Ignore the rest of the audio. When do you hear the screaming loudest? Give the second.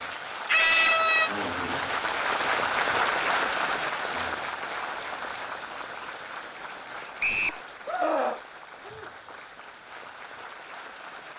1 s.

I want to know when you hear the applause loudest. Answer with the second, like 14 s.
3 s.